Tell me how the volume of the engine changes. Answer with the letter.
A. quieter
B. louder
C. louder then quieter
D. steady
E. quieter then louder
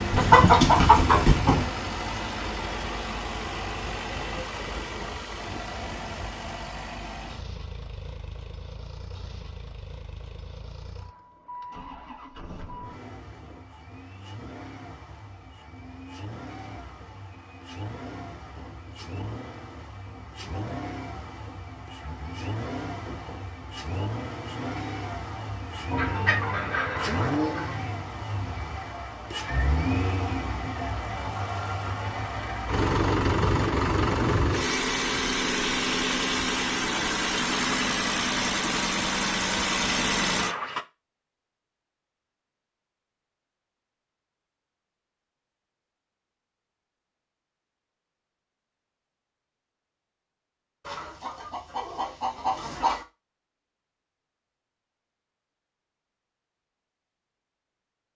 E.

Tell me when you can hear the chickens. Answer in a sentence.
You can hear the chickens from 0.1 to 1.6 s, from 25.9 to 27.9 s and from 50.9 to 53.0 s.